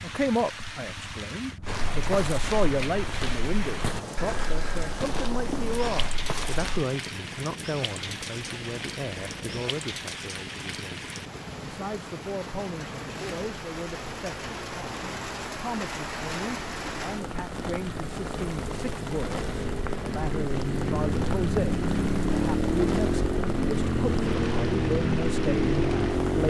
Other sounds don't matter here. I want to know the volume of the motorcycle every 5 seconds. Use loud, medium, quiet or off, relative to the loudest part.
quiet, quiet, quiet, quiet, loud, loud.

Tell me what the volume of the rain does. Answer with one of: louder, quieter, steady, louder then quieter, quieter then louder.
steady.